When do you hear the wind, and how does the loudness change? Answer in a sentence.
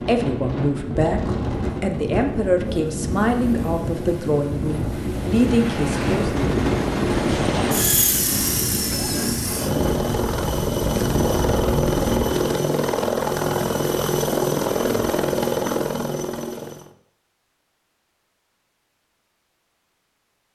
You can hear the wind from 0.0 to 12.4 s, at a steady volume.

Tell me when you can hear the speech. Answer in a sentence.
The speech can be heard from 0.1 to 6.3 s.